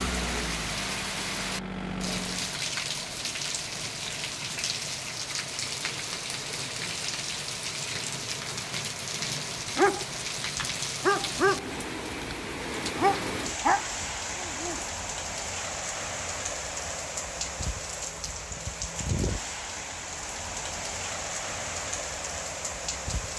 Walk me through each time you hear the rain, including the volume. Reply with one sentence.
You can hear the rain from 0.0 to 23.3 s, at a steady volume.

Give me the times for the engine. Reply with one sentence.
The engine can be heard from 0.0 to 2.6 s.